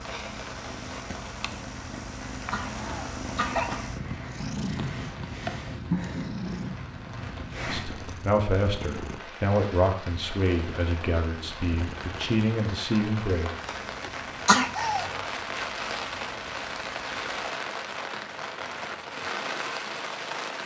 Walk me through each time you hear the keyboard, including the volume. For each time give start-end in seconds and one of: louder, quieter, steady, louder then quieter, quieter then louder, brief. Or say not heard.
not heard.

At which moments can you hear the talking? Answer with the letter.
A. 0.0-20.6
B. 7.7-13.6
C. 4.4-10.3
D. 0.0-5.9
B.